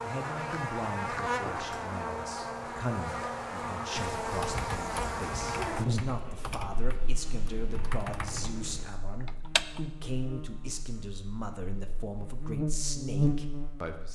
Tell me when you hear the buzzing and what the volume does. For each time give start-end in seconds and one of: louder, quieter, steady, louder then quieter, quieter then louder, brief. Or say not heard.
0.0-14.1 quieter then louder.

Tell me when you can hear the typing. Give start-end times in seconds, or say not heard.
3.9-9.8.